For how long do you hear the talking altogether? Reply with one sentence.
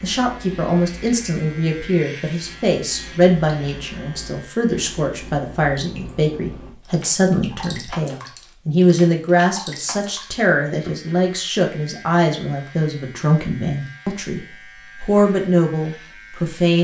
You can hear the talking for 17 seconds altogether.